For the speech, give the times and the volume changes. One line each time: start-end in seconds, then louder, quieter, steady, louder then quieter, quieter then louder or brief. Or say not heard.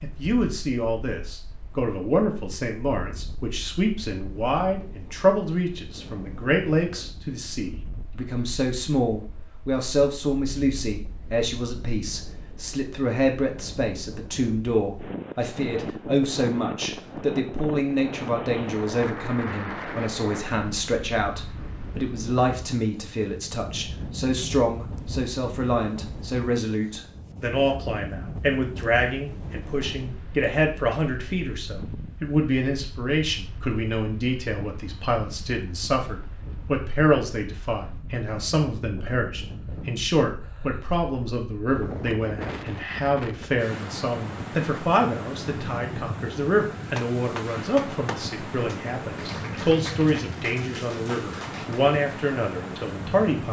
0.0-53.4 steady.